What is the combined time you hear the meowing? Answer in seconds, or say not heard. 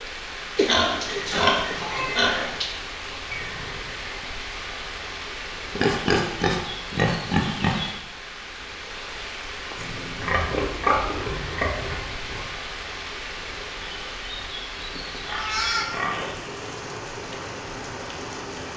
2 s.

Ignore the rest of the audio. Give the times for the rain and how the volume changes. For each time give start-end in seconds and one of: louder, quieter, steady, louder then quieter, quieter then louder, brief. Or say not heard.
0.0-18.7 steady.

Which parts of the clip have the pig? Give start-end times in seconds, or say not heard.
0.6-2.7, 5.8-7.8, 10.2-12.4, 15.1-16.6.